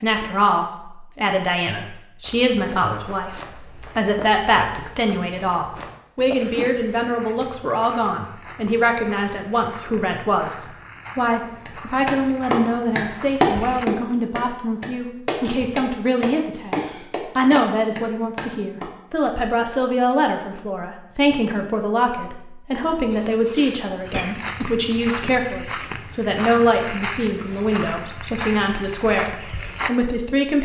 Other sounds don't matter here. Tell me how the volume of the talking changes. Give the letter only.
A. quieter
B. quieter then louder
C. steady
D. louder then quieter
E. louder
C.